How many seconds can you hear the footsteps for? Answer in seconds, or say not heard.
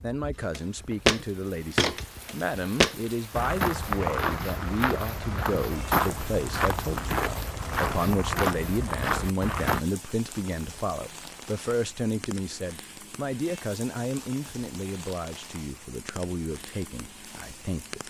9 s.